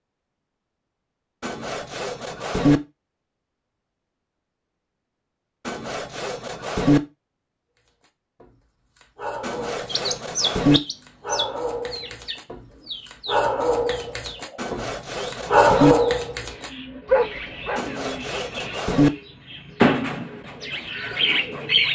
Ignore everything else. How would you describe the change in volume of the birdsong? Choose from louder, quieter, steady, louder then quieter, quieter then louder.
quieter then louder.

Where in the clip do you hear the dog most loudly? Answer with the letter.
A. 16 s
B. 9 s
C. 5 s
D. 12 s
A.